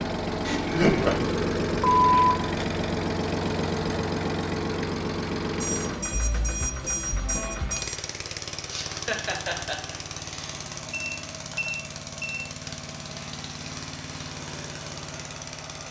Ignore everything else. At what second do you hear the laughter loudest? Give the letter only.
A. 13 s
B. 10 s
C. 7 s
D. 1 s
D.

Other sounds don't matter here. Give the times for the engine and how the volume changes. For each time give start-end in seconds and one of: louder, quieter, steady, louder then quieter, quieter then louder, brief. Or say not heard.
0.0-15.8 quieter.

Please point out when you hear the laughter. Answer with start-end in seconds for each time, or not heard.
0.5-1.1, 8.7-10.6.